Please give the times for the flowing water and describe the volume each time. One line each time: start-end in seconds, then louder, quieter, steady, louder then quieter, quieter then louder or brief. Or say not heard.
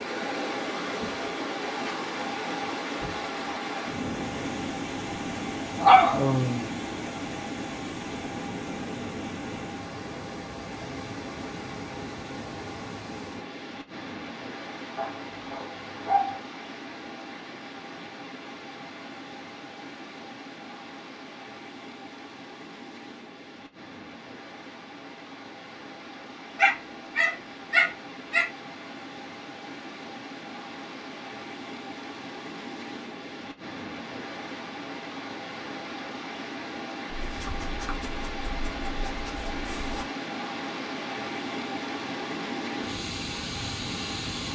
0.0-44.5 quieter then louder.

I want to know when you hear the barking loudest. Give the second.
6 s.